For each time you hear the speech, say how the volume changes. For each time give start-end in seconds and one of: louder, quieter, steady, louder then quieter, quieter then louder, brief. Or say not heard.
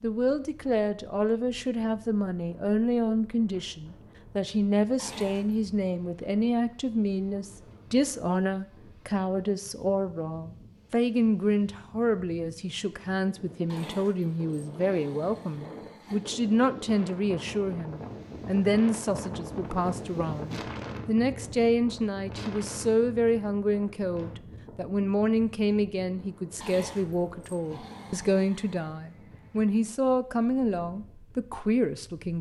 0.0-32.3 steady.